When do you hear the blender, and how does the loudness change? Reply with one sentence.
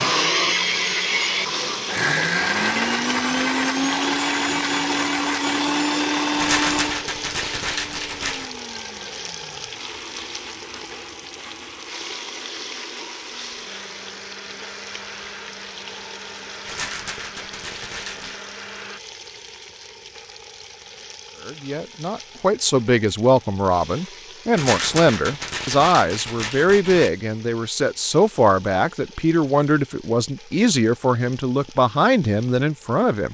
You can hear the blender from 0.0 to 19.0 s, getting quieter.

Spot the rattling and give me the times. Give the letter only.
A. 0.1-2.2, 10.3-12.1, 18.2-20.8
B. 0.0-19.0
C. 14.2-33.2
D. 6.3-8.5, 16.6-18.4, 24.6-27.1
D.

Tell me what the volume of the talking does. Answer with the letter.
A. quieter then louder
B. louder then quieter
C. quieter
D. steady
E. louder
D.